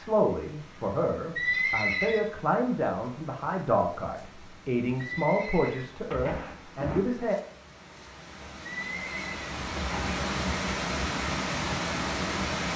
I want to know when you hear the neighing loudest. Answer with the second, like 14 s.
2 s.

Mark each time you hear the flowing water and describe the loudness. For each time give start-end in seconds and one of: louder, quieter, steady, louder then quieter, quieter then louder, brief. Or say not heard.
0.0-12.7 louder.